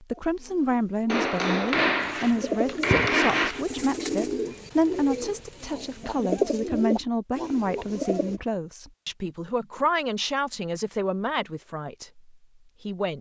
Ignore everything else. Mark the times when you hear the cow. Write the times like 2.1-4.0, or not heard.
not heard.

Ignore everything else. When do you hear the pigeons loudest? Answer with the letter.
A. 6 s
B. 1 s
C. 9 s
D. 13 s
A.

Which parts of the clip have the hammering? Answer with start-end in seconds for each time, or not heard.
1.1-3.6.